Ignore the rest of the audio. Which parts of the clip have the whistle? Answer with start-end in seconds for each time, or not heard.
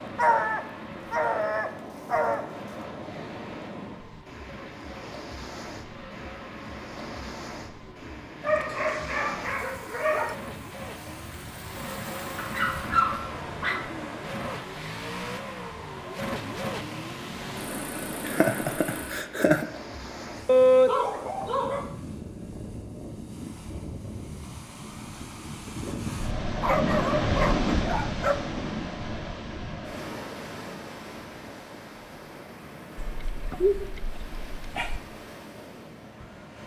not heard.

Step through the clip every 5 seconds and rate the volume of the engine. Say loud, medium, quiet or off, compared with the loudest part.
medium, medium, loud, loud, off, off, off, off.